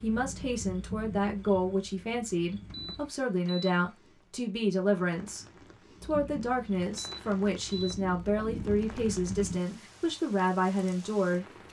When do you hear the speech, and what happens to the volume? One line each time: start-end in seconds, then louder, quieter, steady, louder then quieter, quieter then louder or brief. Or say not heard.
0.0-11.4 steady.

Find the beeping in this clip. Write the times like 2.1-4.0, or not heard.
2.7-3.7, 6.9-8.0.